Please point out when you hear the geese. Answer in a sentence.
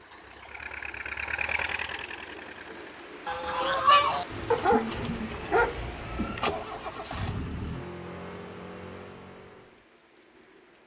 You can hear the geese from 3.2 to 4.2 s.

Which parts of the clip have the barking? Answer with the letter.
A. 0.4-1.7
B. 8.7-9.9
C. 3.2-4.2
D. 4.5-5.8
D.